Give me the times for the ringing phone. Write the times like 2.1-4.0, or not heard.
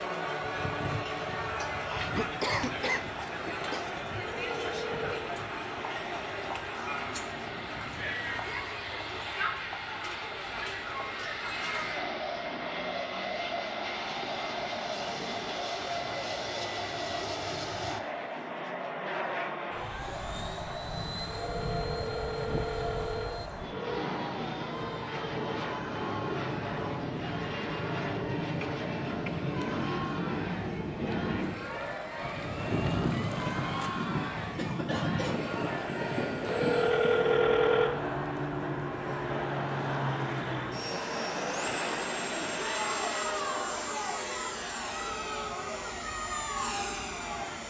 4.2-5.2, 21.2-24.1, 36.5-38.0.